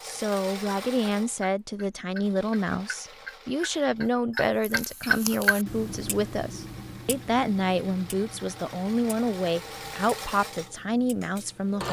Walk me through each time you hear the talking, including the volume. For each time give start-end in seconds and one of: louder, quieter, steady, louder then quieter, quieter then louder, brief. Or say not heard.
0.0-11.8 steady.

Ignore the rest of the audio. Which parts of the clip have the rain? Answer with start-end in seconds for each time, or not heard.
not heard.